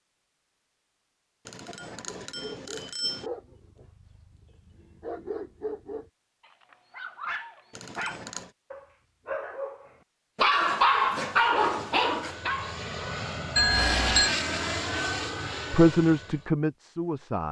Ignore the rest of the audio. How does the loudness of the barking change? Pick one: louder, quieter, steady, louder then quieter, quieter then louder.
louder.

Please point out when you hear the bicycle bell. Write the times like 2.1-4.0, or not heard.
1.4-3.2, 7.8-8.5, 13.6-14.3.